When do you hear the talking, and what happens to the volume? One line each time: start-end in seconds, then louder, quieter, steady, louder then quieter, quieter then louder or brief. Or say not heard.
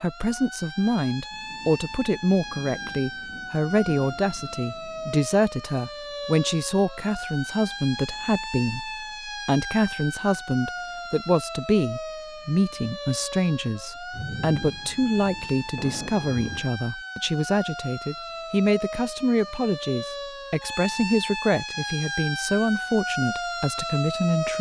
0.0-24.5 steady.